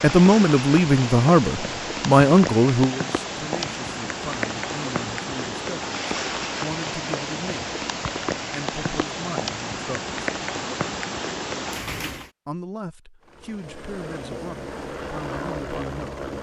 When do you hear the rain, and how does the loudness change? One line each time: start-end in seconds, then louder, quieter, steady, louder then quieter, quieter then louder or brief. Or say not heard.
0.0-12.3 steady.